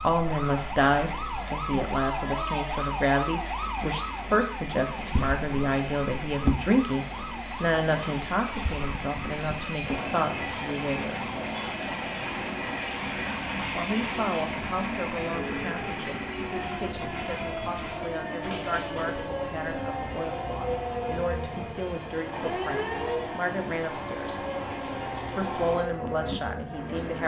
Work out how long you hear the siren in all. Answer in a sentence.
The siren can be heard for 27 seconds in total.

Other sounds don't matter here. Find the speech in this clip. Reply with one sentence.
The speech can be heard from 0.0 to 11.3 s, from 13.7 to 24.4 s and from 25.2 to 27.2 s.